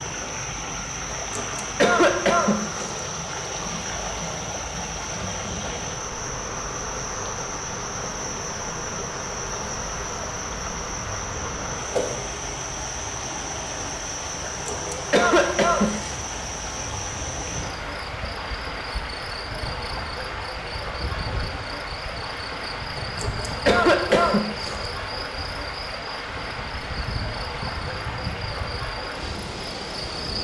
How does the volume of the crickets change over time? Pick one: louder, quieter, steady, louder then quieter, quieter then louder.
steady.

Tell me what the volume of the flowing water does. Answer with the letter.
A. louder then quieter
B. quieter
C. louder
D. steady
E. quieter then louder
D.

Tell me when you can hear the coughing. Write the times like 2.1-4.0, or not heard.
1.1-3.0, 14.7-16.1, 22.9-24.9.